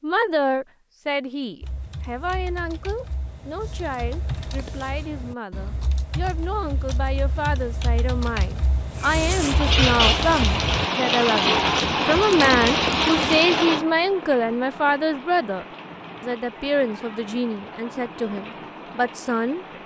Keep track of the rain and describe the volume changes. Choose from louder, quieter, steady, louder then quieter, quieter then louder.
quieter.